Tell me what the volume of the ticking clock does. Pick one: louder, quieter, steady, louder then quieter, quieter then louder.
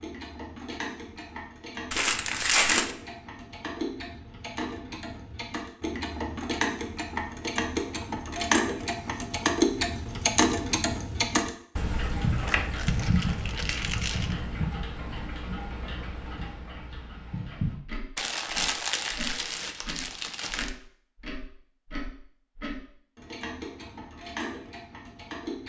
louder then quieter.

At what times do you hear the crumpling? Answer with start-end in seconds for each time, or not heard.
1.9-3.0, 12.4-14.3, 18.1-20.7.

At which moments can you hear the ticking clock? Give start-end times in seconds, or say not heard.
0.0-25.6.